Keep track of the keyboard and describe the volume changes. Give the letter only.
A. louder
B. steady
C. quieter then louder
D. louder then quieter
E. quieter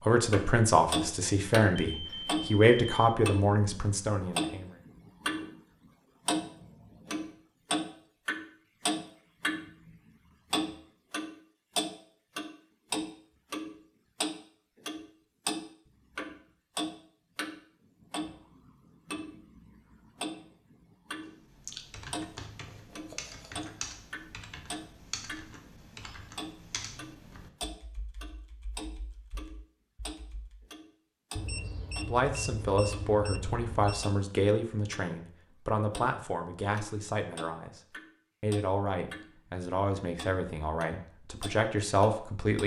E.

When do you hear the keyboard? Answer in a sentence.
You can hear the keyboard from 21.4 to 30.6 s.